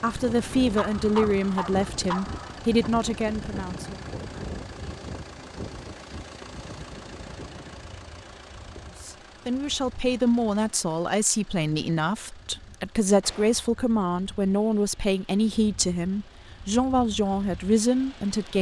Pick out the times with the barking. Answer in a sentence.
The barking can be heard from 0.8 to 2.6 s.